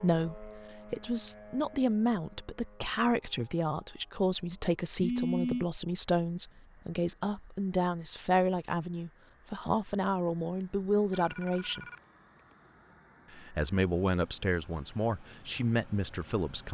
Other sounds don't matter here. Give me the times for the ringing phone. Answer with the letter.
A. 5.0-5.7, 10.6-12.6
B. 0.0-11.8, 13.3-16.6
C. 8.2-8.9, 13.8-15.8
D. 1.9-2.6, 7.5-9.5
A.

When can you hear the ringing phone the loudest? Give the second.
5 s.